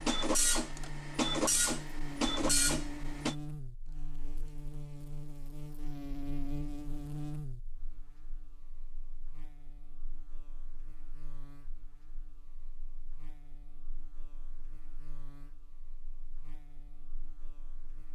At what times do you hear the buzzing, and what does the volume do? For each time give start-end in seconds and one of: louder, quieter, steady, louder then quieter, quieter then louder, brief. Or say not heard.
0.0-18.1 quieter.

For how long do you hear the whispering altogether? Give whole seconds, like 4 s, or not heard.
not heard.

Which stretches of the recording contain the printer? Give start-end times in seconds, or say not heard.
0.0-3.4.